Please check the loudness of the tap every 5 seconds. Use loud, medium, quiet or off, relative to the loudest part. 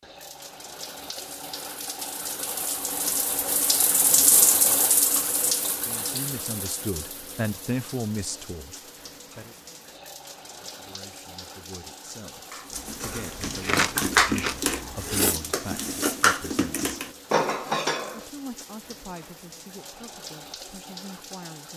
loud, medium, quiet, quiet, quiet.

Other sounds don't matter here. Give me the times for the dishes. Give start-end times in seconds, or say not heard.
12.5-18.2.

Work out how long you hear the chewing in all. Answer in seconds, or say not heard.
3 s.